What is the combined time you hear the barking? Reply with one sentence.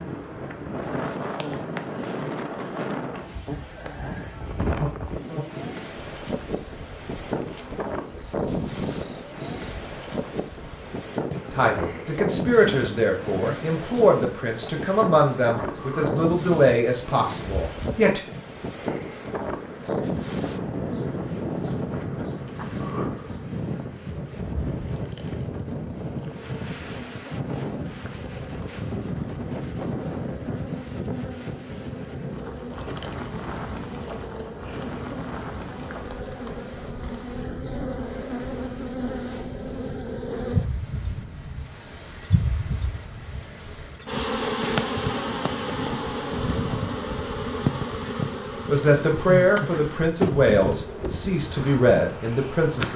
You can't hear the barking here.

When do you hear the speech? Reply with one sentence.
You can hear the speech from 11.5 to 18.2 s and from 48.6 to 52.9 s.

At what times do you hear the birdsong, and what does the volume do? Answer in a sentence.
The birdsong can't be heard in this clip.